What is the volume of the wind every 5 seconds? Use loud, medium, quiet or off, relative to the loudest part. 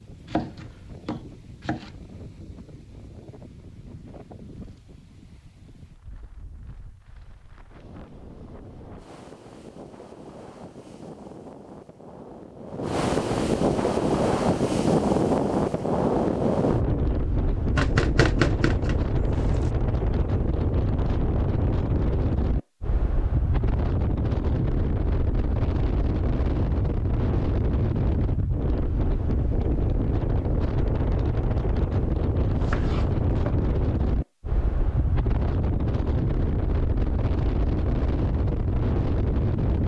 quiet, quiet, loud, loud, loud, loud, loud, loud.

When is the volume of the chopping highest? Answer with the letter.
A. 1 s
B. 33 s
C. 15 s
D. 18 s
D.